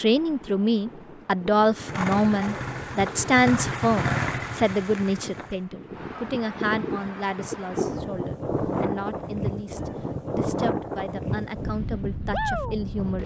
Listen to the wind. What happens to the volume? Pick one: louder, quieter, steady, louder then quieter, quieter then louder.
louder.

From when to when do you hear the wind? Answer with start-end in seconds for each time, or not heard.
0.0-13.2.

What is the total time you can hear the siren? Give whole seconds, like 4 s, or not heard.
not heard.